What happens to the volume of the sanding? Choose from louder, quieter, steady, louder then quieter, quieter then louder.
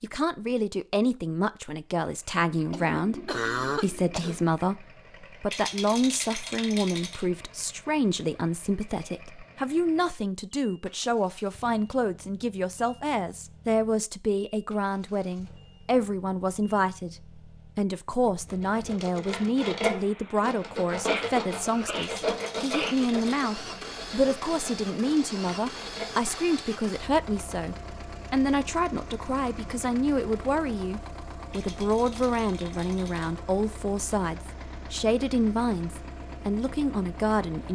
quieter.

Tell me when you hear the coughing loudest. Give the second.
4 s.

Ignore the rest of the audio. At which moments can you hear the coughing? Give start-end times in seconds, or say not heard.
2.7-4.4, 21.1-23.0.